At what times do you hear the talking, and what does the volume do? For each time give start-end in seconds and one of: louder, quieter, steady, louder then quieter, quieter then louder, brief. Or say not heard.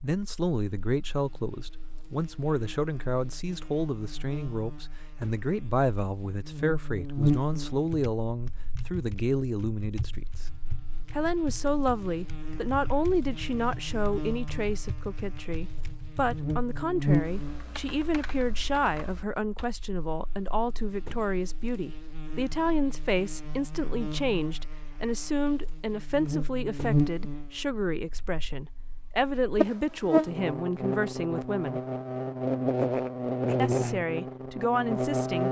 0.0-10.4 steady
11.1-31.8 steady
33.5-35.4 brief.